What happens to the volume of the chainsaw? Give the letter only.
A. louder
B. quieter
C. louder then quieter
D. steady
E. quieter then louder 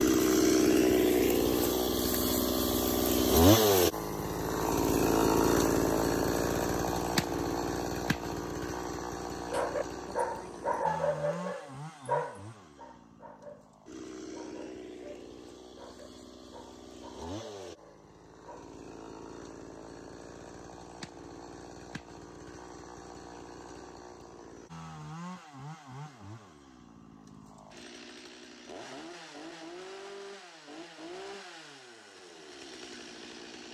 B.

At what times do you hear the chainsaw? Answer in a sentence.
You can hear the chainsaw from 0.0 to 33.6 s.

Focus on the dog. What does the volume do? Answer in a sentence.
The volume of the dog goes down.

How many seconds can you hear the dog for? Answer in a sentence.
The dog can be heard for 9 seconds in total.